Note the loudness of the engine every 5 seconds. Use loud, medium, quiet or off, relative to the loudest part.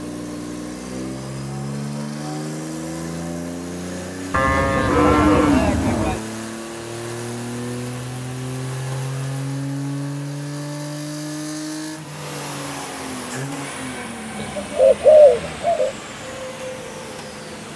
loud, loud, loud, medium.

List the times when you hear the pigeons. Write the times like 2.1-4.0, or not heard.
14.4-15.9.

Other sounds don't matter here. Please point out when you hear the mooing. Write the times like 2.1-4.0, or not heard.
4.3-6.2.